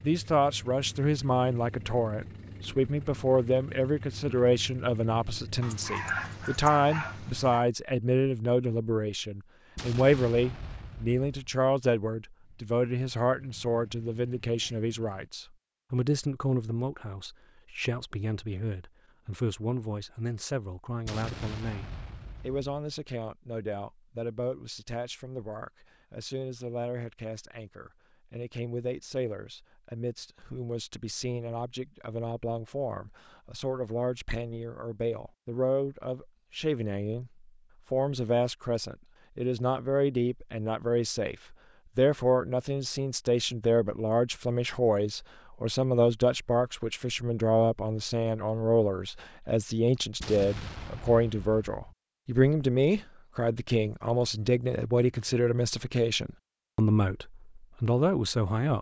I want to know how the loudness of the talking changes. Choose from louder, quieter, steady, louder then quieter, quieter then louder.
quieter then louder.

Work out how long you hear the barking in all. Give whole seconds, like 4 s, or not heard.
2 s.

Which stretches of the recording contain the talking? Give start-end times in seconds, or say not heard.
0.0-58.7.